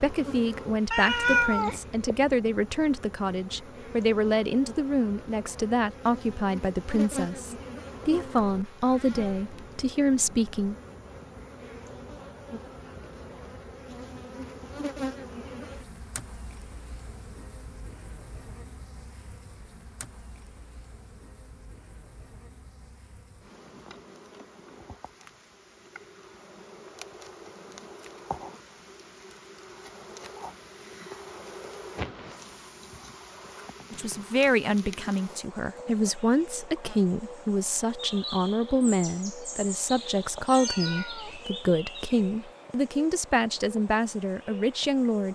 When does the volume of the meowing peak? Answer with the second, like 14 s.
1 s.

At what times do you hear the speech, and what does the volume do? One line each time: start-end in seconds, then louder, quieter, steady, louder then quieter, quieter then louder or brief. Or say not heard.
0.0-10.8 steady
33.9-45.2 steady.